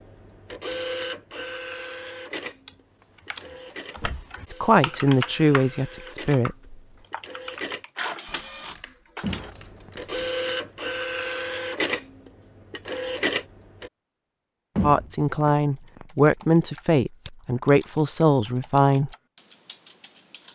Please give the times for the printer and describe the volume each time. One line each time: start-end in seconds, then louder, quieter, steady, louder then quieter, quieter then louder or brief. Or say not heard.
0.0-13.9 quieter then louder.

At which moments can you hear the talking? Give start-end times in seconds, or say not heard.
4.5-6.8, 14.8-19.1.